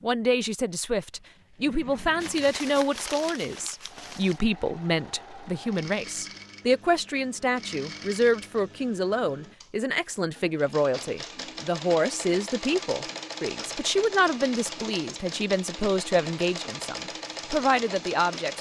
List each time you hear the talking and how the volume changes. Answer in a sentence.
The talking can be heard from 0.0 to 18.5 s, at a steady volume.